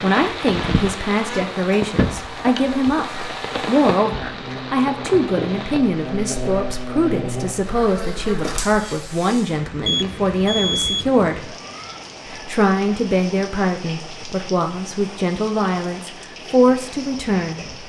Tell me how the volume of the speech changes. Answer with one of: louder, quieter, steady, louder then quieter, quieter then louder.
steady.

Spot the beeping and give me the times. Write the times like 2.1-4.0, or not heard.
9.8-11.1.